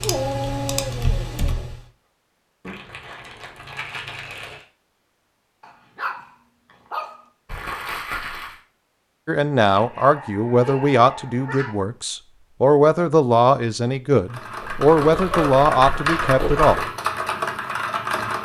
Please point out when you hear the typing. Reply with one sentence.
The typing can be heard from 0.0 to 1.8 s and from 14.3 to 18.4 s.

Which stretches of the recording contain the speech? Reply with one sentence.
You can hear the speech from 9.2 to 16.8 s.